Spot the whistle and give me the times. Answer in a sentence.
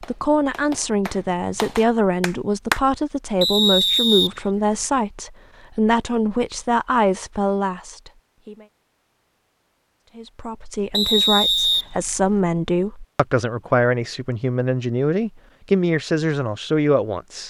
The whistle can be heard from 3.4 to 4.8 s and from 10.9 to 12.3 s.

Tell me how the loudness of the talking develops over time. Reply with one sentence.
The loudness of the talking stays about the same.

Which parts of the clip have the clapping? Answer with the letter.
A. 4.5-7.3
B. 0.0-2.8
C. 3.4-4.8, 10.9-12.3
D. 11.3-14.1
B.